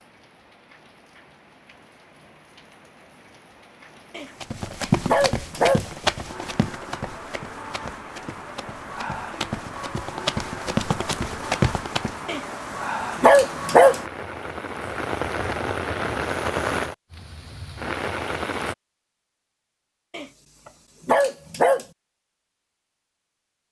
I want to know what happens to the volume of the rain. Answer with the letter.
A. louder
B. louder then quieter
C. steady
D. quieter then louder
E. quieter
A.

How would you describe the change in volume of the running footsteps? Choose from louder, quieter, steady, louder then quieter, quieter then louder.
quieter then louder.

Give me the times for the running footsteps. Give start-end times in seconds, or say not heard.
4.4-12.2.